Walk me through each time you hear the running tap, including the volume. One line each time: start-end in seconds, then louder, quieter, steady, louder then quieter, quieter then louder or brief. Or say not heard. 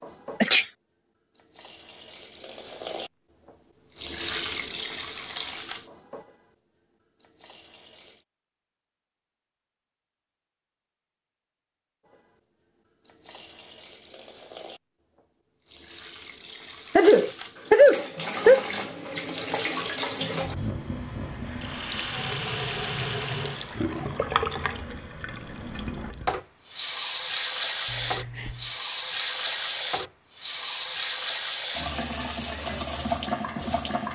0.0-8.2 louder then quieter
12.1-34.1 louder.